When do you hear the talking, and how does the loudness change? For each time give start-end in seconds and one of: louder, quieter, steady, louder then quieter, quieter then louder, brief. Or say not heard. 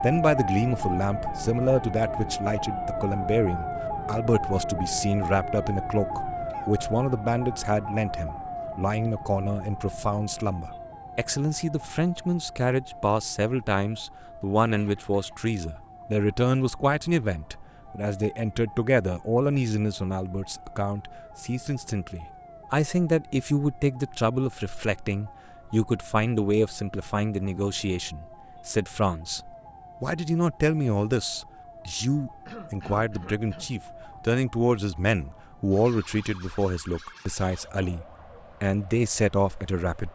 0.0-40.1 steady.